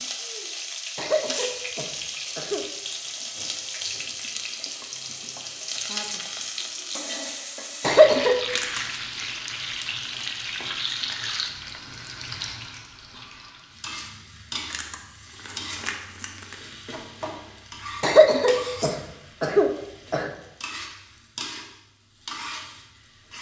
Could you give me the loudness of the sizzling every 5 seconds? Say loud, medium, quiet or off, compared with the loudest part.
loud, loud, loud, medium, medium.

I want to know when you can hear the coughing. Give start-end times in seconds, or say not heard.
0.9-2.6, 7.8-8.4, 18.0-20.3.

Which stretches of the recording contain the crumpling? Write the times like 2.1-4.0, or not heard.
8.5-9.3, 14.7-16.6.